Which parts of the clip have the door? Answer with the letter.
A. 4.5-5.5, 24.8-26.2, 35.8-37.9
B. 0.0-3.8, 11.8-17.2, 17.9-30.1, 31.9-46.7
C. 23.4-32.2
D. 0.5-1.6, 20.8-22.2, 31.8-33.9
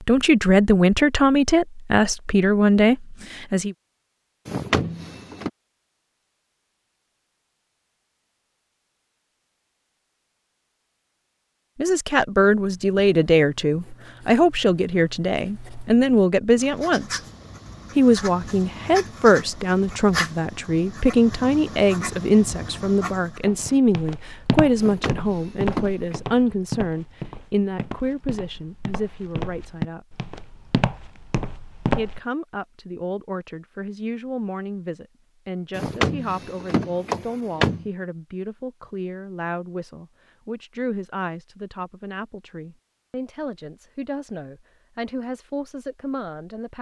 A.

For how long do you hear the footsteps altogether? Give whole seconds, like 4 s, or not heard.
9 s.